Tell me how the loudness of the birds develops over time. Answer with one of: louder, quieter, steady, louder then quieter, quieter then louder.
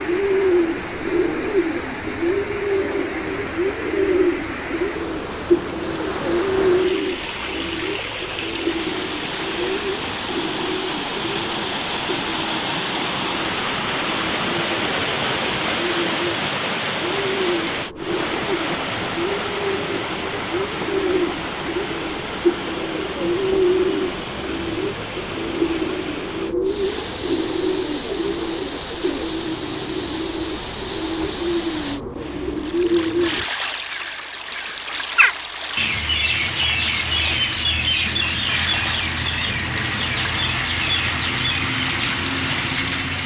quieter then louder.